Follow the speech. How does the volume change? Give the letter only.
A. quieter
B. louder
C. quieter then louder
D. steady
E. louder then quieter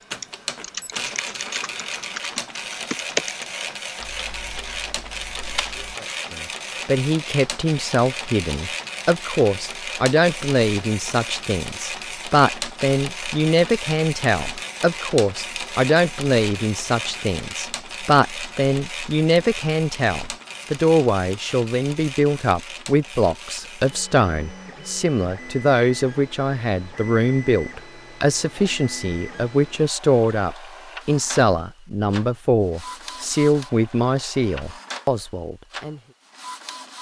D.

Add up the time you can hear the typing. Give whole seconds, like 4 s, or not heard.
6 s.